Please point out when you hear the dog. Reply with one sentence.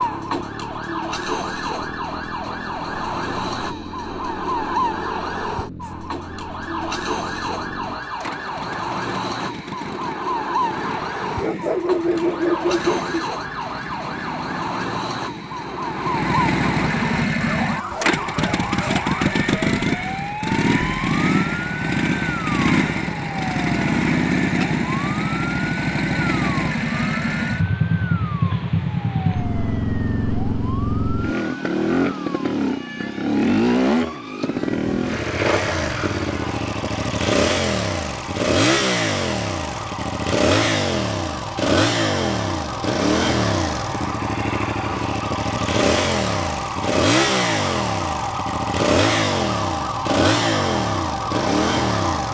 The dog can be heard from 11.4 to 13.3 s.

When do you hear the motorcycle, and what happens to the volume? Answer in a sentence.
You can hear the motorcycle from 0.0 to 52.2 s, getting louder.